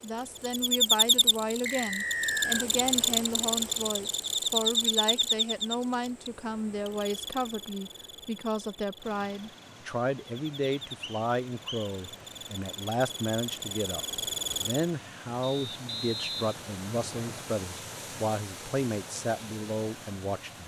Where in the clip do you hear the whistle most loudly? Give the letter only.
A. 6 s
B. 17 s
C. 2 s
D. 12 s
C.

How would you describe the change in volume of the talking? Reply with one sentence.
The loudness of the talking stays about the same.